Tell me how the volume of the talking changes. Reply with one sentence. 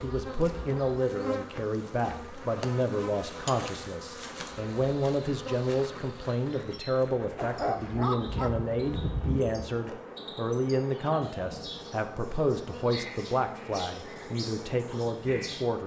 The loudness of the talking stays about the same.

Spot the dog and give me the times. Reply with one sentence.
The dog can be heard from 7.3 to 9.7 s.